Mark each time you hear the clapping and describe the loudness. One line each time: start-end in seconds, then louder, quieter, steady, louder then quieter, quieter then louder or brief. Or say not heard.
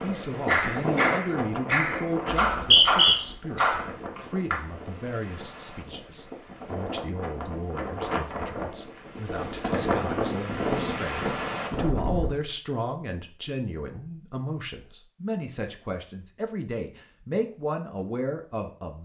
0.0-4.6 steady.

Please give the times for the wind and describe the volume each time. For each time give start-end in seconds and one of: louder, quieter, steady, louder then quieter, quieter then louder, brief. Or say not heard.
0.0-12.3 quieter then louder.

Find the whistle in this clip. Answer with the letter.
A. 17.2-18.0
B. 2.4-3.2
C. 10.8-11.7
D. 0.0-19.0
B.